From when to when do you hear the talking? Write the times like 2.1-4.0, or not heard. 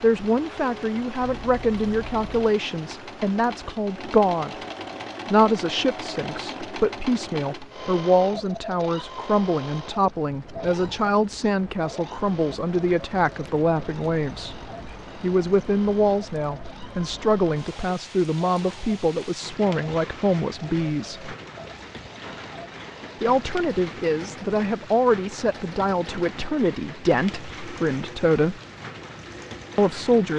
0.0-4.5, 5.2-14.6, 15.2-21.3, 23.2-28.6, 29.8-30.3.